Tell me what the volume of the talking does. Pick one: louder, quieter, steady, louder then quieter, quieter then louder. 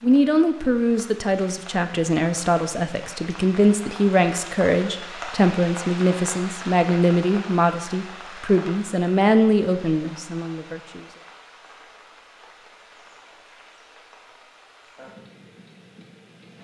steady.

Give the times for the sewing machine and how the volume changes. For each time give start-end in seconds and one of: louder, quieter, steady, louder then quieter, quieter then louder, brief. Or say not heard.
not heard.